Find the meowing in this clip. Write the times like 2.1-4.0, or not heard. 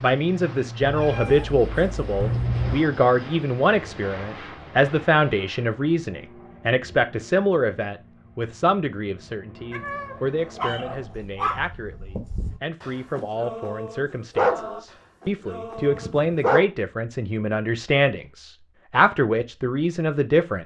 0.8-2.8, 9.7-11.3, 15.8-16.3.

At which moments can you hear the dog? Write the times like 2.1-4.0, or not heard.
10.6-16.6.